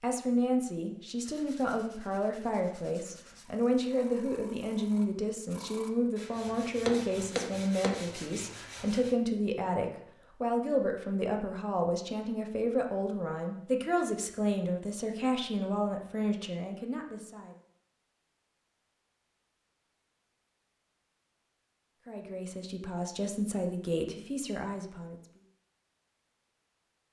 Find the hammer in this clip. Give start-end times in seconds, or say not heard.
6.5-8.1.